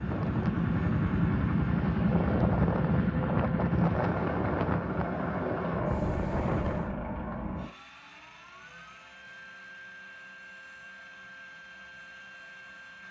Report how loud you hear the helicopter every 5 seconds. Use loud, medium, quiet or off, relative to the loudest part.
loud, medium, quiet.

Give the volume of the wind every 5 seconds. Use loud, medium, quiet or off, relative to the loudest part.
loud, loud, off.